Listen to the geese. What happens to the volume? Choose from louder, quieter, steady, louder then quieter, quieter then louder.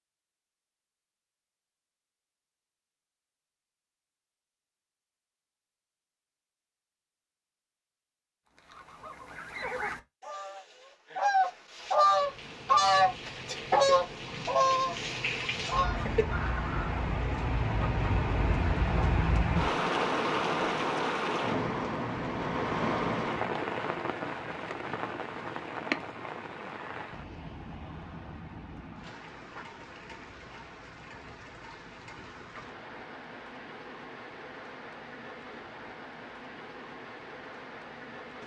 louder then quieter.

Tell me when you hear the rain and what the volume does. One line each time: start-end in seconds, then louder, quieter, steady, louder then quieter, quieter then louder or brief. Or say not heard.
11.9-38.4 louder then quieter.